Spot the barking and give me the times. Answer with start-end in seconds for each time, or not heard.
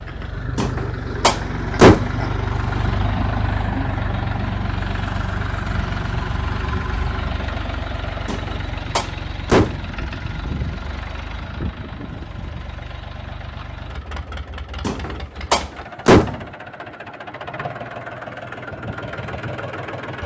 not heard.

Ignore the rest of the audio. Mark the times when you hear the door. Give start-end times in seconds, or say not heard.
0.6-2.2, 8.2-9.9, 14.8-16.4.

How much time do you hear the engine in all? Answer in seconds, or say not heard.
20 s.